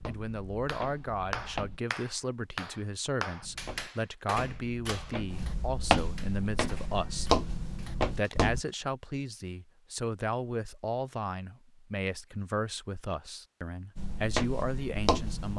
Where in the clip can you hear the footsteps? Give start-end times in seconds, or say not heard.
0.0-1.8, 3.4-8.7, 13.9-15.5.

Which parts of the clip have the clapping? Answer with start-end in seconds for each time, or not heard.
0.7-8.8.